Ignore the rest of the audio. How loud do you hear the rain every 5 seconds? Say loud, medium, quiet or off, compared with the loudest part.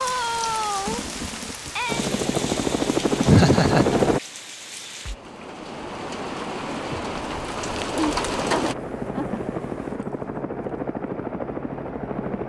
loud, loud, off.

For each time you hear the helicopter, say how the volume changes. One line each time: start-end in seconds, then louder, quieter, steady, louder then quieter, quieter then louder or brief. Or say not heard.
1.9-4.2 brief
8.3-12.4 steady.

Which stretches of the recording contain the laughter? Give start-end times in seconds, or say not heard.
3.2-3.9, 8.0-9.4.